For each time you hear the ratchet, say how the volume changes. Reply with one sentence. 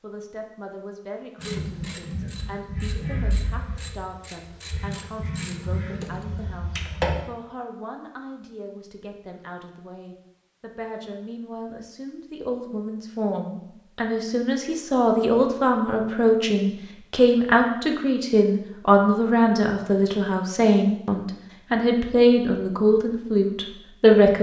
The ratchet can be heard from 1.4 to 7.2 s, getting quieter then louder.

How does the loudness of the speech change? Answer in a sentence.
The loudness of the speech goes up.